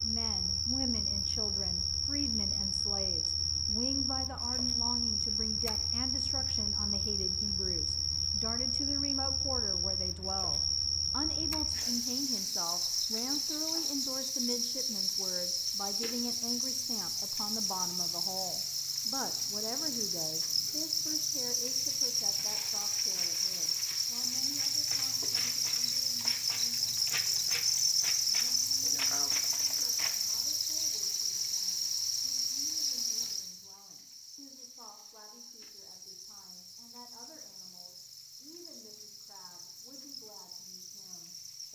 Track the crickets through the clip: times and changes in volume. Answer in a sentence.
The crickets can be heard from 0.0 to 41.6 s, getting quieter.